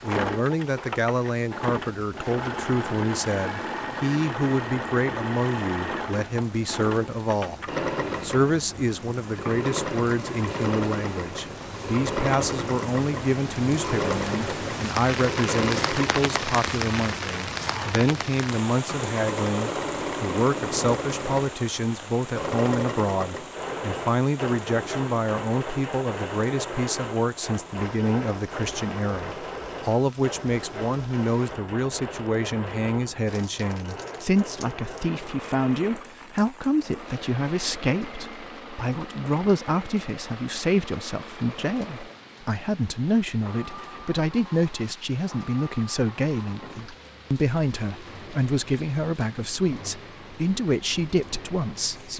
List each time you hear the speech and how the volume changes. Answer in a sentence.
The speech can be heard from 0.0 to 7.6 s, at a steady volume; and from 8.2 to 52.1 s, at a steady volume.